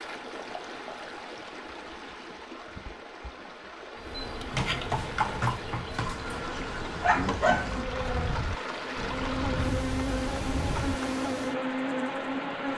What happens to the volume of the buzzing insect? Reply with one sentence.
The loudness of the buzzing insect goes up.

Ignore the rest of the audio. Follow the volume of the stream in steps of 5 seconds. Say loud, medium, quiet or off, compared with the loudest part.
medium, loud, loud.